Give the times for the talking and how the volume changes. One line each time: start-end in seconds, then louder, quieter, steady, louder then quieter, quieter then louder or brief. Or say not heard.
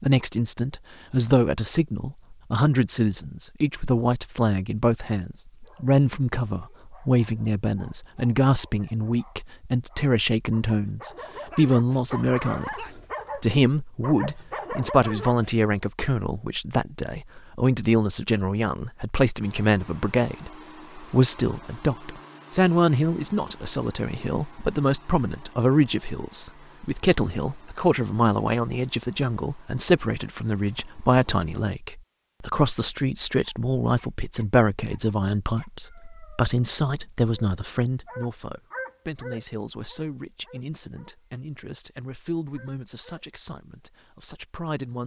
0.0-45.0 quieter.